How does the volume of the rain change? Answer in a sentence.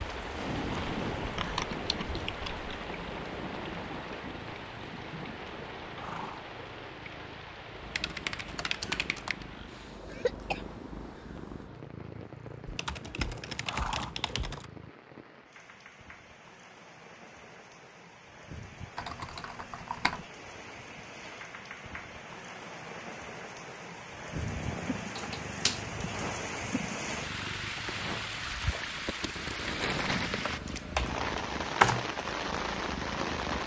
The volume of the rain goes down, then up.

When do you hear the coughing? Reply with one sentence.
The coughing can be heard from 10.1 to 10.7 s.